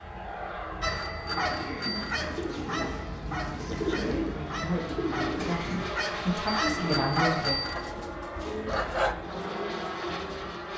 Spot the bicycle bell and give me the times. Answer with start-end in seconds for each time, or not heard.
0.8-2.3, 6.5-7.9.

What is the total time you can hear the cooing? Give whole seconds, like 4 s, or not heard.
9 s.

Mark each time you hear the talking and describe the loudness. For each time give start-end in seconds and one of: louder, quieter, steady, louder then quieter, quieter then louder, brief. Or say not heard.
2.6-7.6 louder.